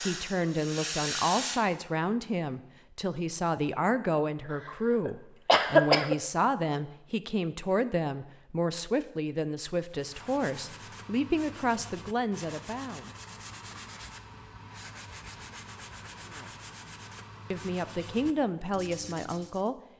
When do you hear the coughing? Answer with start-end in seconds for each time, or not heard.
5.0-6.2.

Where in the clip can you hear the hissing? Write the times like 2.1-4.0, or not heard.
0.0-1.6.